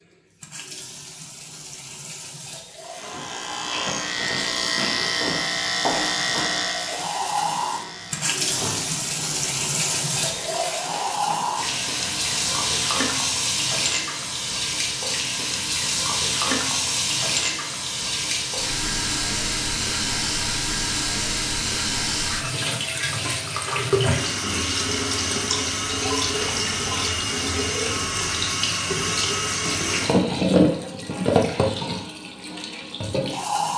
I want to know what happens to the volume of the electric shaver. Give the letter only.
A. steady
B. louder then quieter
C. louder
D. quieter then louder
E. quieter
E.